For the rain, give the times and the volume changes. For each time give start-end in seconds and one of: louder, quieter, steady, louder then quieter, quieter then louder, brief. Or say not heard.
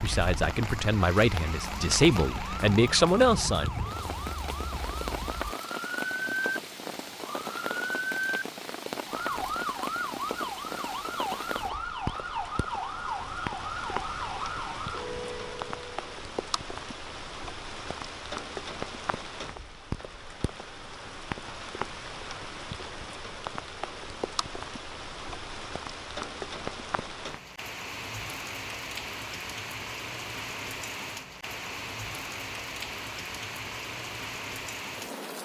0.0-35.3 steady.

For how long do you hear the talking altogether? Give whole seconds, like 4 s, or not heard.
4 s.